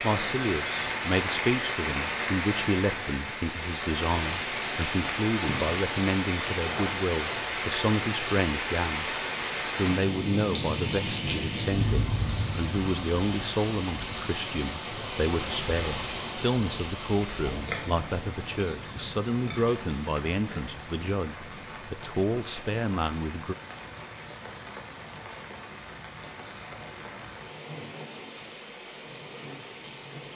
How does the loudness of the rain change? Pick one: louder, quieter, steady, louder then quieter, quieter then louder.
quieter.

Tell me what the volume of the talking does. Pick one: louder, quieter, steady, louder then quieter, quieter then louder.
steady.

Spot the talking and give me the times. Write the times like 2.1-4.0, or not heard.
0.0-23.6.